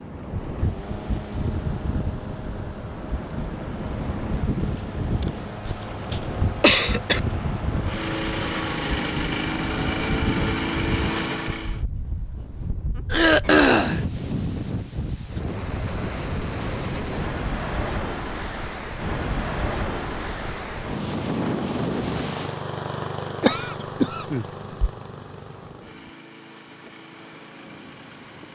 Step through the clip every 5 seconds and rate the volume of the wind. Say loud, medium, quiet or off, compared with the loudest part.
loud, loud, loud, loud, loud, quiet.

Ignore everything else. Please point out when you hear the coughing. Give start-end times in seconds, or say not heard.
5.2-7.2, 13.1-14.0, 23.4-24.9.